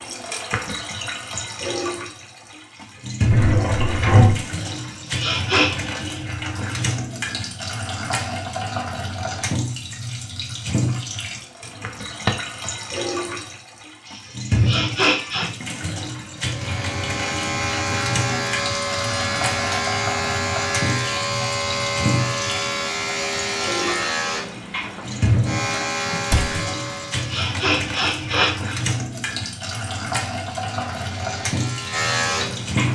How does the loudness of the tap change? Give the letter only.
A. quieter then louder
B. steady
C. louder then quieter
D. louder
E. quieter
B.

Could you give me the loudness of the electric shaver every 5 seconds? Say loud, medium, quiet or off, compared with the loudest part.
off, off, off, loud, loud, loud, loud.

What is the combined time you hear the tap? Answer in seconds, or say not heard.
33 s.